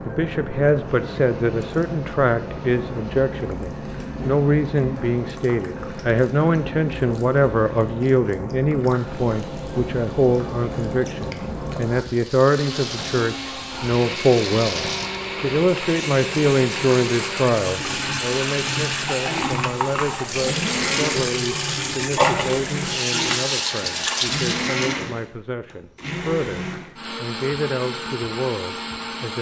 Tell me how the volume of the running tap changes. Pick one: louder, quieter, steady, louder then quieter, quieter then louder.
louder.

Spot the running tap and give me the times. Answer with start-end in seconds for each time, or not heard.
0.0-24.8.